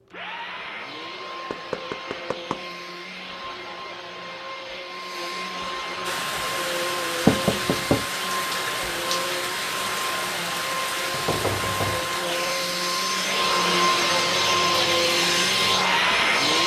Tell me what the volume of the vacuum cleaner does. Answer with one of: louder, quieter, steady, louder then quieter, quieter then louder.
louder.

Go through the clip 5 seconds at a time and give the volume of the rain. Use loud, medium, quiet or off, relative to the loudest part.
off, loud, loud, medium.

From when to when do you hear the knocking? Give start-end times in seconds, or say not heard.
1.5-2.6, 7.2-8.1, 11.1-12.2.